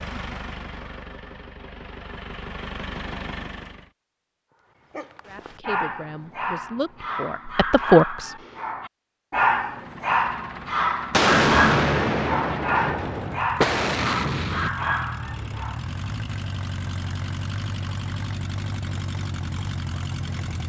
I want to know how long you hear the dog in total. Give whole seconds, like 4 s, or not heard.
11 s.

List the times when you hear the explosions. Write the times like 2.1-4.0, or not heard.
11.1-14.7.